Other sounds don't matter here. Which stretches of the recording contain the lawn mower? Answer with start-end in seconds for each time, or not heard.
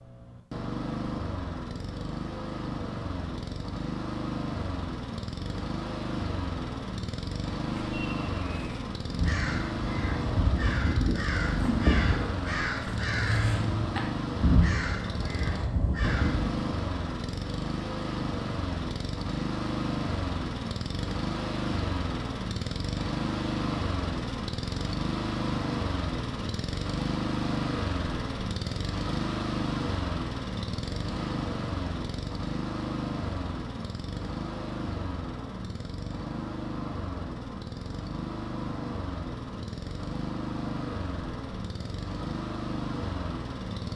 0.0-43.9.